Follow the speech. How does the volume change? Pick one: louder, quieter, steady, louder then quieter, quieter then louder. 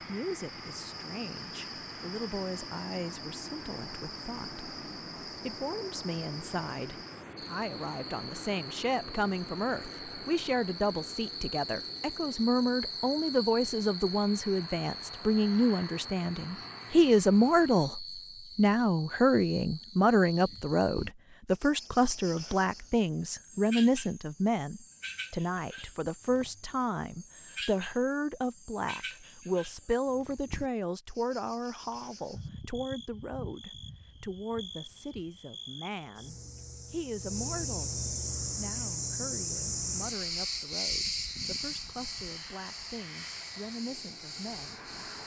louder then quieter.